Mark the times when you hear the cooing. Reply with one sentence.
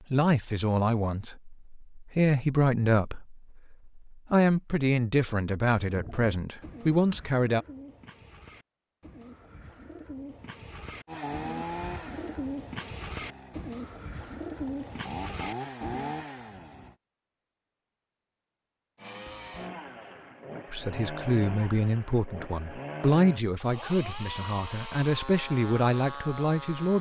You can hear the cooing from 5.8 to 16.1 s.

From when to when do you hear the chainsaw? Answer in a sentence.
You can hear the chainsaw from 11.1 to 16.9 s and from 18.9 to 26.9 s.